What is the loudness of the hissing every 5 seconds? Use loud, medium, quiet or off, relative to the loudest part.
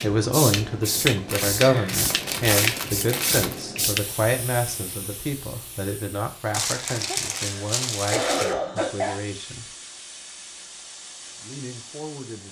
loud, quiet, quiet.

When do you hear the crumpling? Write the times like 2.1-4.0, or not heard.
1.2-3.6, 6.5-8.6.